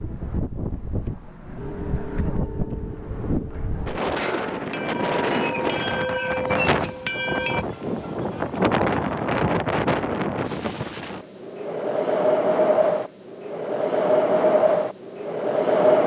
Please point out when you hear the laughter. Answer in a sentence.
The laughter can't be heard in this clip.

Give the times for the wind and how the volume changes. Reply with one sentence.
The wind can be heard from 0.0 to 16.0 s, getting louder.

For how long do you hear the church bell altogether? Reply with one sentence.
You can hear the church bell for 6 seconds altogether.